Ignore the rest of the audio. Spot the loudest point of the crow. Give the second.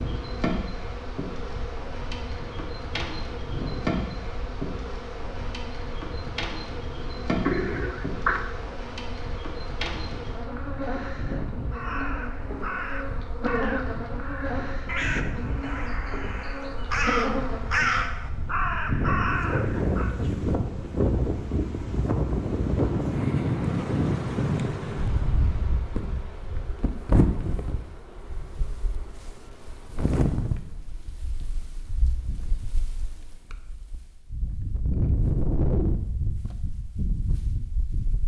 18 s.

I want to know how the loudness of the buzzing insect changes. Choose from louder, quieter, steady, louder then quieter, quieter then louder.
quieter.